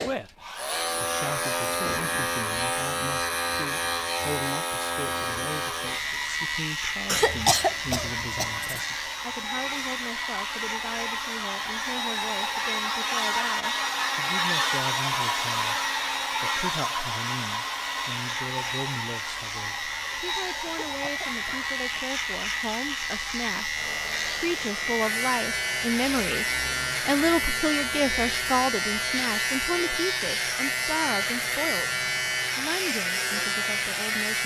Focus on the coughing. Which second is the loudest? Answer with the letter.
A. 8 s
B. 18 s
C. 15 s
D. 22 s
A.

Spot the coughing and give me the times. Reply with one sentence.
The coughing can be heard from 7.0 to 8.8 s and from 20.6 to 22.1 s.